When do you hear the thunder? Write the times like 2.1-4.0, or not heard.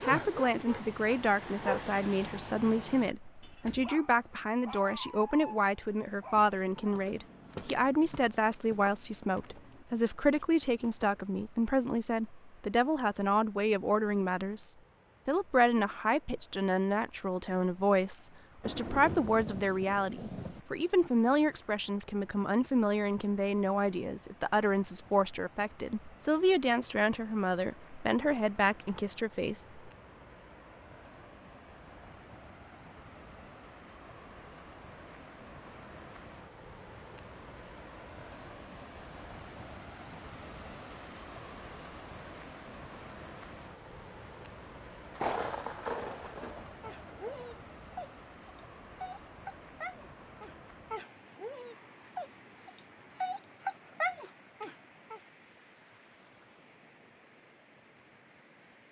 18.6-20.6, 45.1-47.5.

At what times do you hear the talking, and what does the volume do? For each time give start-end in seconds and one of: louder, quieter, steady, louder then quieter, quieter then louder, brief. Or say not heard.
0.0-29.8 steady.